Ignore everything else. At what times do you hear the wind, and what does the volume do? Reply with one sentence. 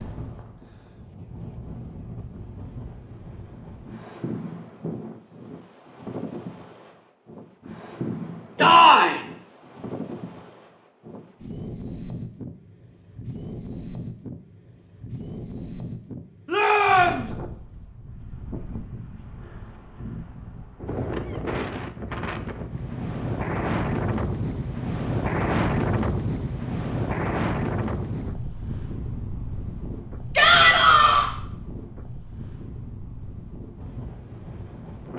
The wind can be heard from 0.0 to 35.1 s, getting louder then quieter.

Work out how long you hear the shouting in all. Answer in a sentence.
The shouting can be heard for 2 seconds in total.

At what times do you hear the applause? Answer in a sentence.
You can't hear the applause here.